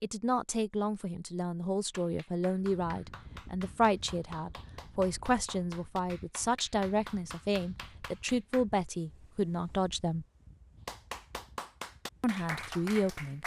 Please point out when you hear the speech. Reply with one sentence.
The speech can be heard from 0.0 to 10.2 s and from 12.2 to 13.4 s.